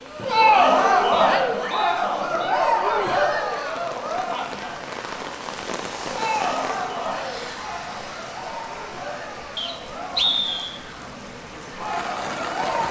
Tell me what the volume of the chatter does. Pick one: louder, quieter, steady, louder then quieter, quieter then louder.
quieter.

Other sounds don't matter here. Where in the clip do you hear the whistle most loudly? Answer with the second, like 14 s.
10 s.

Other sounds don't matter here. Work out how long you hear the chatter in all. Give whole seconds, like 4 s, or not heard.
13 s.